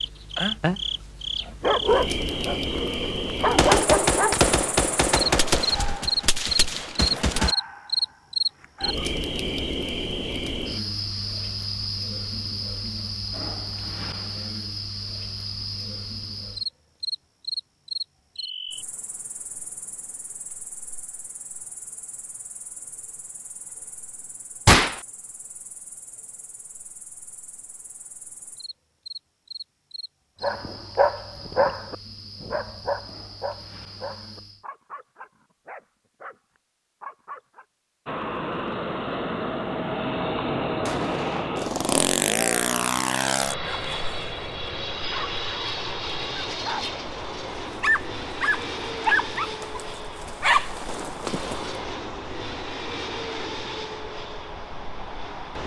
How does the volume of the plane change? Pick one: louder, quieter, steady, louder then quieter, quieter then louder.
quieter.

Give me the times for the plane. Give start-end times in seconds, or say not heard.
38.0-55.6.